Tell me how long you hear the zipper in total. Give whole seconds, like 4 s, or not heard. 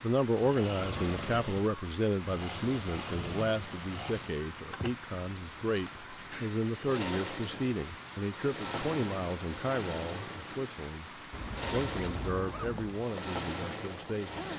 2 s.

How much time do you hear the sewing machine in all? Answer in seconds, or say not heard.
14 s.